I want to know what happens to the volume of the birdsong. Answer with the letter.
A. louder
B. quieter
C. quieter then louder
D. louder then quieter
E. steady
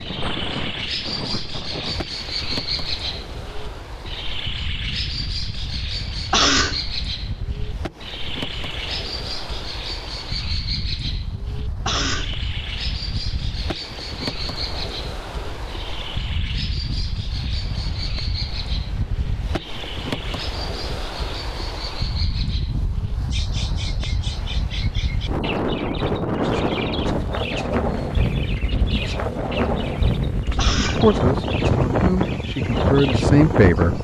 B.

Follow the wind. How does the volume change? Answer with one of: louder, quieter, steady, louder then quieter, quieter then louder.
louder.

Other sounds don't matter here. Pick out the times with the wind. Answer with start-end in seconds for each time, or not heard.
0.0-33.9.